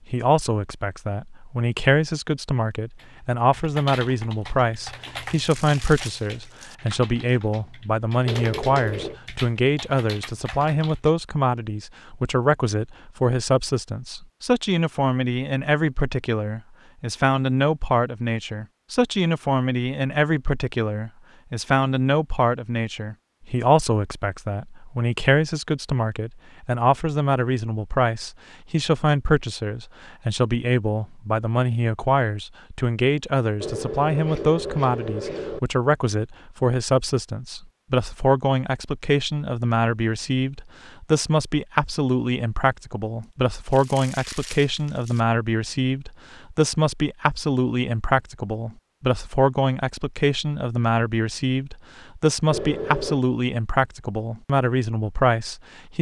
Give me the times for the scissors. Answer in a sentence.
You can hear the scissors from 8.2 to 9.2 s, from 33.6 to 35.6 s and from 52.5 to 53.2 s.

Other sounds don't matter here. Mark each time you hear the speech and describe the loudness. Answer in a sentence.
The speech can be heard from 0.1 to 55.9 s, at a steady volume.